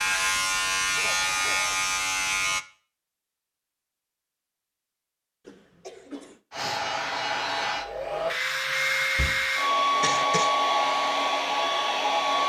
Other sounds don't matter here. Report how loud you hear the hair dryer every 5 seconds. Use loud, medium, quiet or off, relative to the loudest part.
off, loud, loud.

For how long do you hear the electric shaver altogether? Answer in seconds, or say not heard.
3 s.